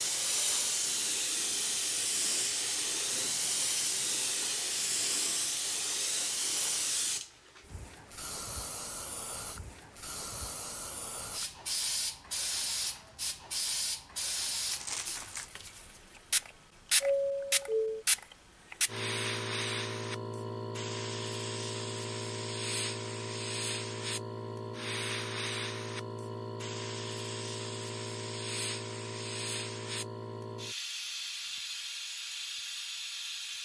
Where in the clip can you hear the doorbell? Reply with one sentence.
You can hear the doorbell from 17.0 to 18.1 s.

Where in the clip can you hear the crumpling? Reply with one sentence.
You can hear the crumpling from 14.7 to 15.5 s.